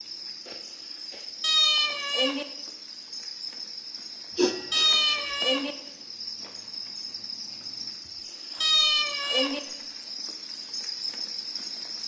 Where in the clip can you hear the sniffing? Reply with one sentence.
The sniffing can be heard from 0.5 to 1.3 s, from 4.3 to 5.4 s and from 8.1 to 9.4 s.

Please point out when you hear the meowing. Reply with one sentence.
You can hear the meowing from 1.4 to 2.5 s, from 4.7 to 5.8 s and from 8.6 to 9.6 s.